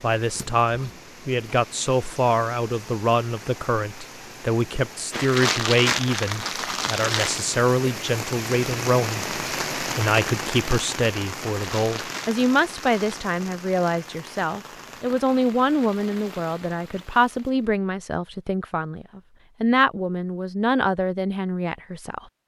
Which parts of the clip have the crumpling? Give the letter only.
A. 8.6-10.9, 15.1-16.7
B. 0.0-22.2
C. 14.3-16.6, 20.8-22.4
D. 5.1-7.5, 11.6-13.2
D.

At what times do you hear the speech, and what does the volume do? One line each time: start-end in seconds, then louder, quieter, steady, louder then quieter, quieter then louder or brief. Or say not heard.
0.0-22.2 steady.